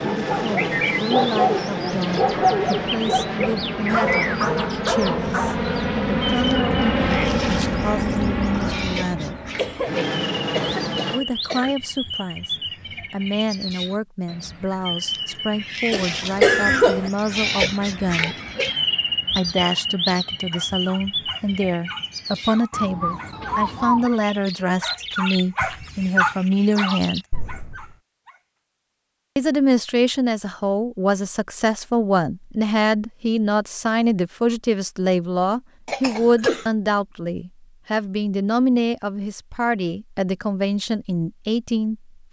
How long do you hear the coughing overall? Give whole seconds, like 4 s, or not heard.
4 s.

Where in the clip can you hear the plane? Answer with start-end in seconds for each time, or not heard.
0.0-11.2.